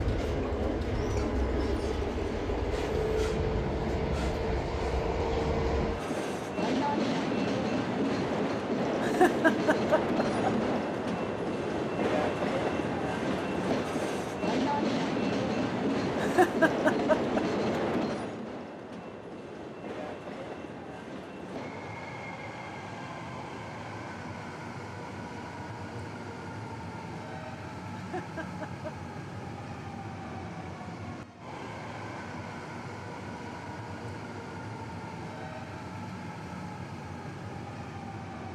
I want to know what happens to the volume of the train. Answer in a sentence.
The volume of the train goes down.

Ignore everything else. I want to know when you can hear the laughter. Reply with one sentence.
You can hear the laughter from 9.0 to 10.6 s, from 16.1 to 17.4 s and from 27.9 to 28.9 s.